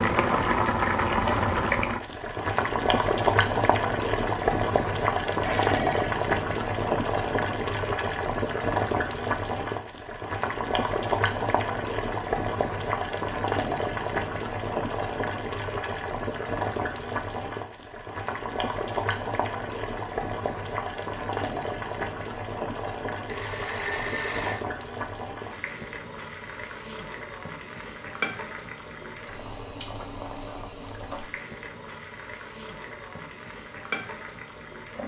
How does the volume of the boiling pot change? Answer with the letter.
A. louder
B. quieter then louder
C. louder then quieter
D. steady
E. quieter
E.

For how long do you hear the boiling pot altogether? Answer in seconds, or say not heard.
35 s.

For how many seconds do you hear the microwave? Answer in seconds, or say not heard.
not heard.